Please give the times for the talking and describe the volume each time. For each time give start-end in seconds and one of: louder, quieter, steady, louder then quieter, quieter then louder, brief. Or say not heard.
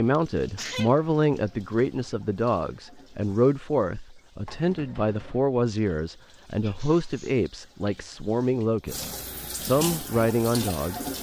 0.0-11.1 steady.